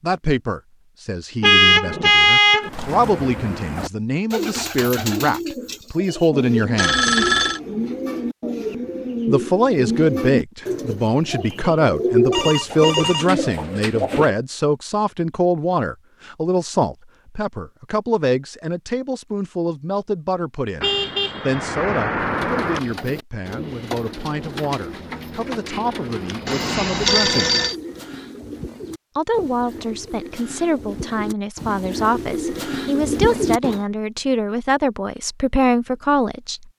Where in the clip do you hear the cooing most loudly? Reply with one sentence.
The volume of the cooing peaks at 12 seconds.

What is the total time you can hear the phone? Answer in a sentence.
The phone can be heard for 3 seconds in total.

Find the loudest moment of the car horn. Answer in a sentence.
The loudest moment of the car horn is at 2 seconds.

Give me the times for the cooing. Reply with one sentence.
The cooing can be heard from 2.6 to 14.3 s and from 22.1 to 33.9 s.